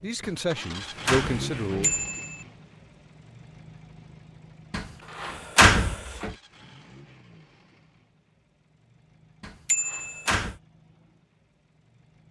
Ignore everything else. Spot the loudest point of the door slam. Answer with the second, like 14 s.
6 s.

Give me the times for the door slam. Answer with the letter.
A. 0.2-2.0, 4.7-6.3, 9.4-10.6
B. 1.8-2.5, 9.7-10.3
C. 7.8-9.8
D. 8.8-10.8
A.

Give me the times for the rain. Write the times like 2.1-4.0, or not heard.
not heard.